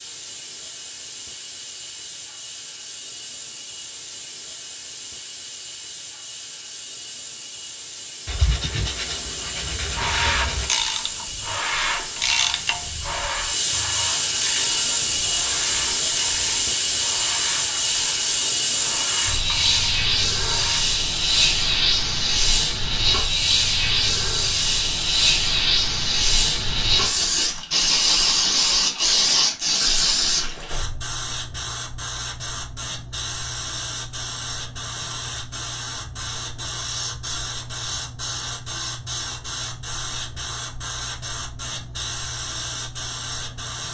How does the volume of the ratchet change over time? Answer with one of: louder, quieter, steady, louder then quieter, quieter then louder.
quieter.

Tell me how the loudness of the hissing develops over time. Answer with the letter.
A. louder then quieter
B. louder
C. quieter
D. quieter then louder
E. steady
A.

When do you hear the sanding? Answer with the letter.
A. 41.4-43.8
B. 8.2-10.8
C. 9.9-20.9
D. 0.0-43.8
B.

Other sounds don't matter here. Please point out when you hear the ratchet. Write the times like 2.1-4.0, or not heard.
9.9-20.9.